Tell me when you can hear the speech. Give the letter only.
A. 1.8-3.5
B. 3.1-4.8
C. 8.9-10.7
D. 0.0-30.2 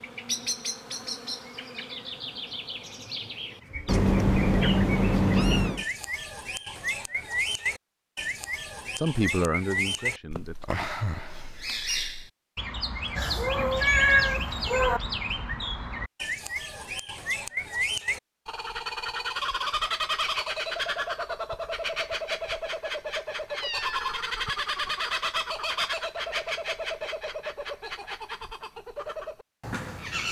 C.